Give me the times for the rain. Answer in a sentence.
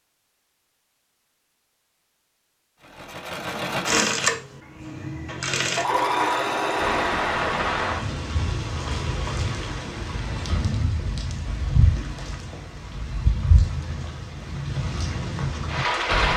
The rain can be heard from 6.8 to 16.3 s.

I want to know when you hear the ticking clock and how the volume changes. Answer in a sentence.
The ticking clock can't be heard in this clip.